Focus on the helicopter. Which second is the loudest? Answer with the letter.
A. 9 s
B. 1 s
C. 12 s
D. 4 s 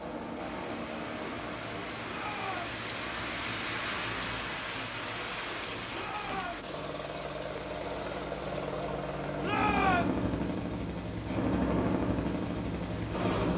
C.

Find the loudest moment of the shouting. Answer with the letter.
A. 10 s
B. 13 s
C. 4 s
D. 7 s
A.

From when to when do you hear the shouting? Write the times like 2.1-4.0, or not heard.
2.0-2.7, 5.9-6.8, 9.4-10.2.